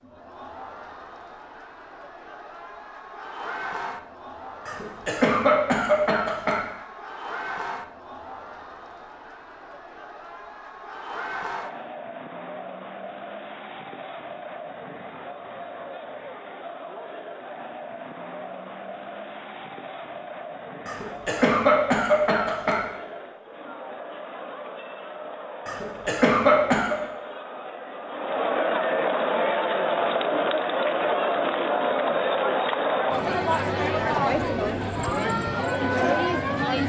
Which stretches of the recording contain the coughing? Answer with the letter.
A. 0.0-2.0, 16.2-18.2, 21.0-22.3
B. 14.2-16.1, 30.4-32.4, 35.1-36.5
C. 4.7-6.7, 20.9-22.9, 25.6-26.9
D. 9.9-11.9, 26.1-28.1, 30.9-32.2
C.